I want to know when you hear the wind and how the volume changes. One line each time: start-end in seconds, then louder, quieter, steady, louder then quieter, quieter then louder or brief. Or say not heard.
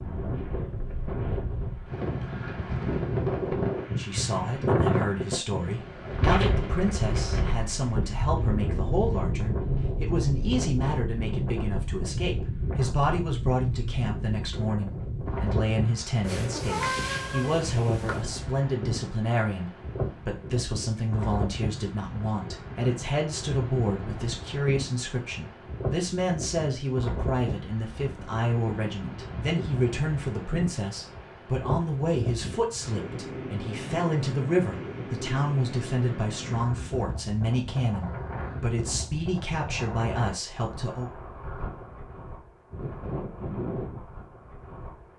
0.0-45.1 quieter.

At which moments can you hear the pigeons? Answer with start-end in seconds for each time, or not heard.
not heard.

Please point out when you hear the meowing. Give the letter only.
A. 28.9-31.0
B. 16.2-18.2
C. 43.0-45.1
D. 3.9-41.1
B.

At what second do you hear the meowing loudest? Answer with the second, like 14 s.
17 s.